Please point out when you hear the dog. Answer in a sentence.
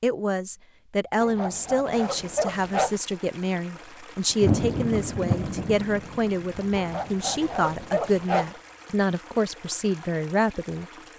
You can hear the dog from 1.2 to 3.0 s and from 6.8 to 8.6 s.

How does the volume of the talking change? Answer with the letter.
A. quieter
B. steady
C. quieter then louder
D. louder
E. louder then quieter
B.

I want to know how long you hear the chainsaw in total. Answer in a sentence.
You can't hear the chainsaw here.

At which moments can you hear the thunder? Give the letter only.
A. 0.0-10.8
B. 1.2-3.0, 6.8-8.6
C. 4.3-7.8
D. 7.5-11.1
C.